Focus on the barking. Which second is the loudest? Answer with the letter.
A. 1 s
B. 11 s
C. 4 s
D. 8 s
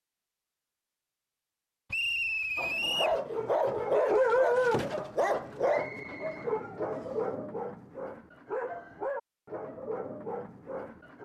C.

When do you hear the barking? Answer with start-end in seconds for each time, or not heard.
2.5-11.2.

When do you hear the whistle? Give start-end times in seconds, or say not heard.
1.9-3.2, 5.7-7.2.